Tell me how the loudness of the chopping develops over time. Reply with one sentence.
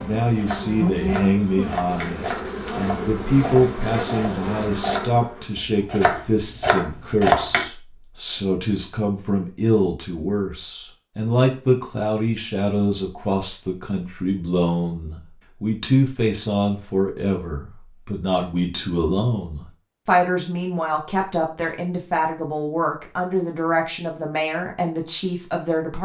The volume of the chopping goes up.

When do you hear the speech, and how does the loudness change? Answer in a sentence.
The speech can be heard from 0.0 to 26.0 s, at a steady volume.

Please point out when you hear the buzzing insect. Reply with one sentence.
The buzzing insect can be heard from 0.0 to 5.6 s.